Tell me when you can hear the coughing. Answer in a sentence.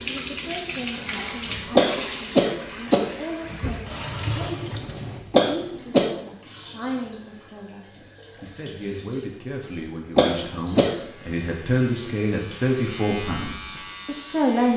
The coughing can be heard from 1.8 to 3.0 s, from 5.3 to 6.1 s and from 10.2 to 10.9 s.